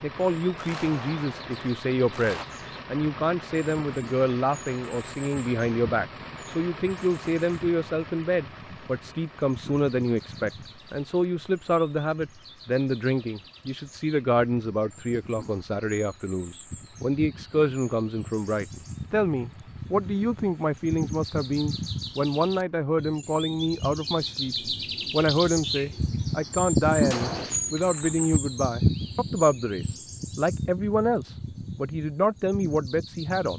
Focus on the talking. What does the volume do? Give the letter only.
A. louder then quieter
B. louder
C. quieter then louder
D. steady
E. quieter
D.